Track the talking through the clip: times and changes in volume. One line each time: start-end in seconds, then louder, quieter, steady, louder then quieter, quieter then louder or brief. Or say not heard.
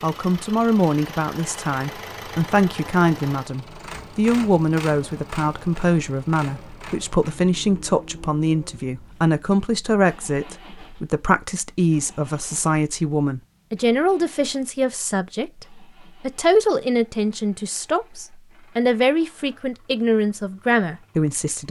0.0-21.6 steady.